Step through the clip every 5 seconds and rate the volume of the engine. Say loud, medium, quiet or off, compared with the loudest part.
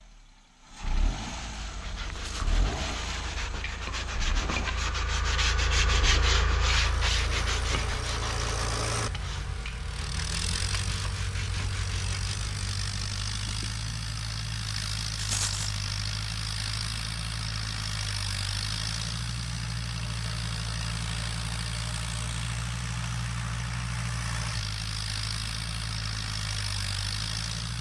medium, loud, loud, loud, loud, loud.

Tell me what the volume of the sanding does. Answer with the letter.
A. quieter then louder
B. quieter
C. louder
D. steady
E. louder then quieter
E.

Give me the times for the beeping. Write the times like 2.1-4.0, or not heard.
not heard.